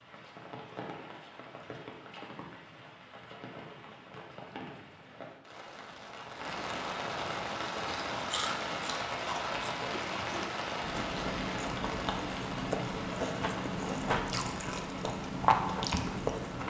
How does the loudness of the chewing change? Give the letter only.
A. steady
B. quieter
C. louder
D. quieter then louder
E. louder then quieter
C.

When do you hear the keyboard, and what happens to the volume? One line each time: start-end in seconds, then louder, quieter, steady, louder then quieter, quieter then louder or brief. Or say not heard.
not heard.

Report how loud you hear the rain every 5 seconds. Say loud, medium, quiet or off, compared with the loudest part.
medium, loud, loud, medium.